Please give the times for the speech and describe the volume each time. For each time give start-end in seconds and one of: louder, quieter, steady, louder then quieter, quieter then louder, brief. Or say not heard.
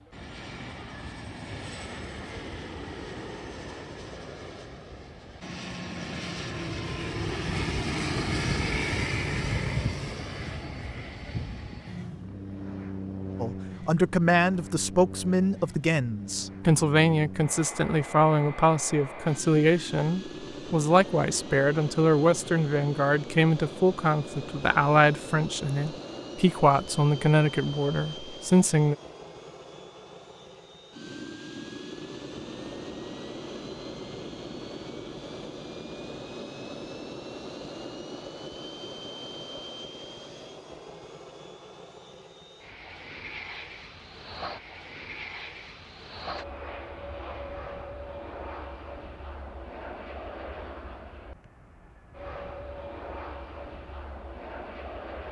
13.4-28.9 steady.